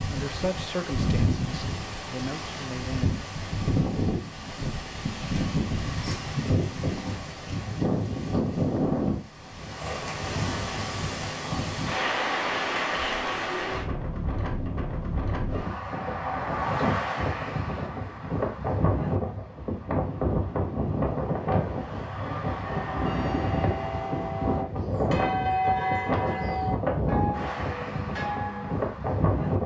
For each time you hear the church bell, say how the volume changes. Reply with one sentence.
You can hear the church bell from 22.2 to 28.8 s, getting louder then quieter.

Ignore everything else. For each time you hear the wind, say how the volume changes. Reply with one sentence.
The wind can be heard from 0.0 to 29.6 s, at a steady volume.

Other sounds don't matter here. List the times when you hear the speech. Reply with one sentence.
You can hear the speech from 0.1 to 3.1 s.